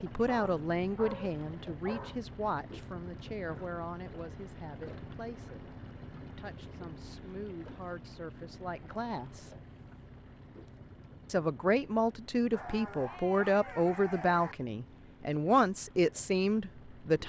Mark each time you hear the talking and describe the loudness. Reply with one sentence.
You can hear the talking from 0.0 to 9.6 s, getting quieter then louder; and from 11.2 to 17.2 s, at a steady volume.